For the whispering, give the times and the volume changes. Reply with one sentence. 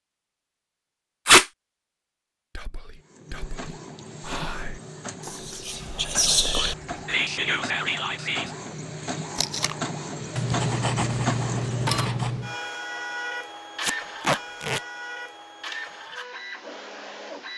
You can hear the whispering from 2.5 to 8.6 s, getting louder.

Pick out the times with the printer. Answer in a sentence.
You can hear the printer from 3.0 to 17.5 s.